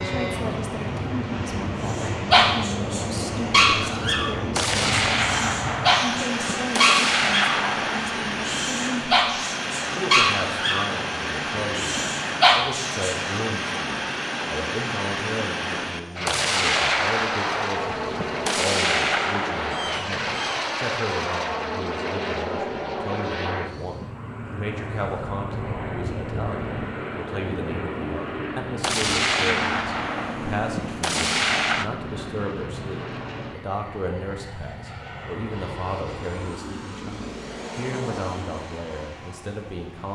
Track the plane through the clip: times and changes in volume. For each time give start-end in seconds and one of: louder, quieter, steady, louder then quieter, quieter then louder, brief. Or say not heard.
0.0-40.0 quieter.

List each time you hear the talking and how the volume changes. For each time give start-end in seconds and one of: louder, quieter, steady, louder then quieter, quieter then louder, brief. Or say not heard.
0.0-40.0 steady.